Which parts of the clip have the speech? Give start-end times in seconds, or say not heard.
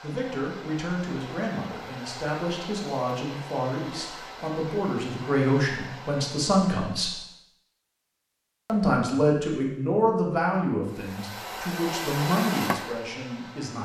0.0-7.2, 8.7-13.8.